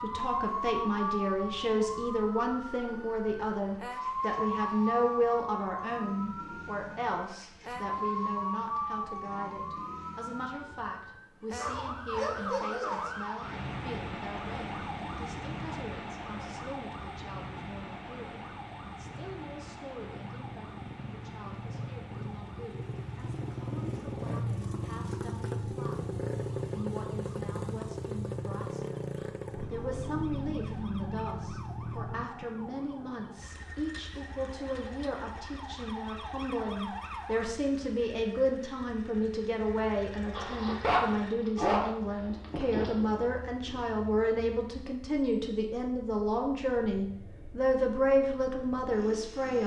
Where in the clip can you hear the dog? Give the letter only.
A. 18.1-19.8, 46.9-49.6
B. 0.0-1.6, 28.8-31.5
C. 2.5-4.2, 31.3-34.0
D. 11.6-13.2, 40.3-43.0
D.